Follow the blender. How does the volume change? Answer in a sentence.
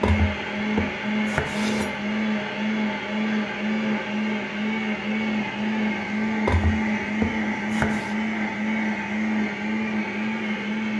The loudness of the blender stays about the same.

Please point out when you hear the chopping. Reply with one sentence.
The chopping can be heard from 0.0 to 2.0 s and from 6.5 to 8.2 s.